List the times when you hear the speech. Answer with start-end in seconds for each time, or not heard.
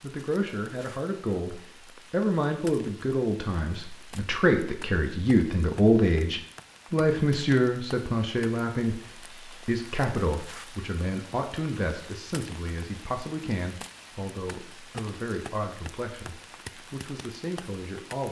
0.0-18.2.